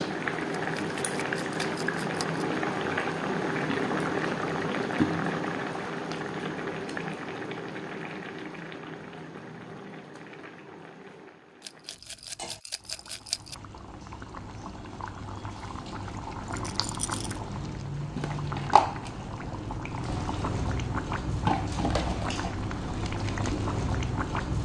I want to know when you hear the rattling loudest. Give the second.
13 s.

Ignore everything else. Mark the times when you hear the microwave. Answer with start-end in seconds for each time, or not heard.
not heard.